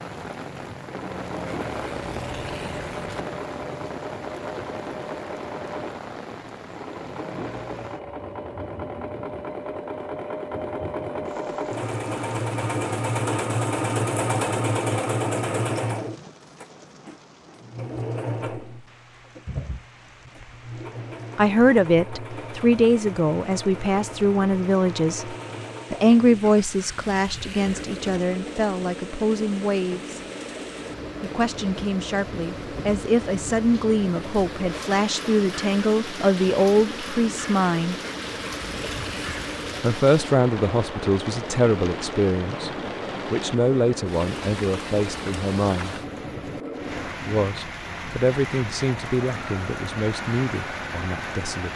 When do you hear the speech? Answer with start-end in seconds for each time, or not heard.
21.4-25.3, 25.9-30.2, 31.2-38.0, 39.8-42.7, 43.3-46.0, 47.2-51.7.